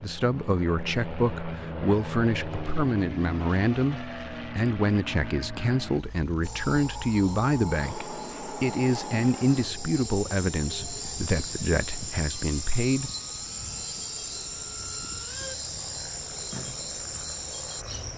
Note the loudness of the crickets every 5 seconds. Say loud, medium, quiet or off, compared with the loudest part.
off, loud, loud, loud.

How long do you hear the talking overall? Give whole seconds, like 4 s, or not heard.
13 s.